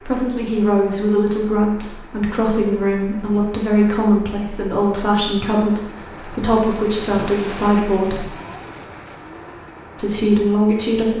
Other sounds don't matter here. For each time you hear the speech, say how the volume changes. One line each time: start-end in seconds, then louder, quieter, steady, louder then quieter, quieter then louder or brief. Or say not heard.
0.0-8.2 steady
9.9-11.1 brief.